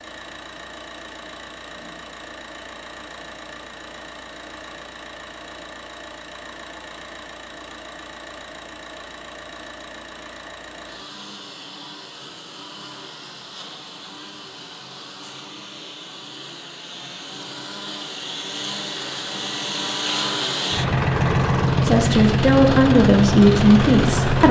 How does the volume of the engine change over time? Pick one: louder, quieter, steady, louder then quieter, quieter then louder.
louder.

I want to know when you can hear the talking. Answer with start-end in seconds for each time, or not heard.
21.8-24.4.